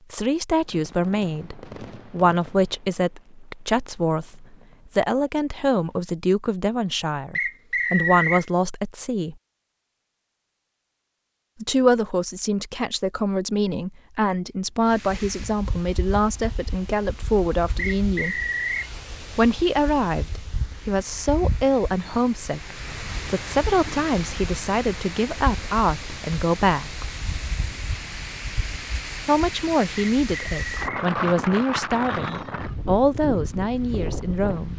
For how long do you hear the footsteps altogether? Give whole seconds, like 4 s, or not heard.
not heard.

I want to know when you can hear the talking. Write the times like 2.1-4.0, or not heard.
0.1-9.3, 11.6-18.4, 19.4-27.1, 29.2-34.7.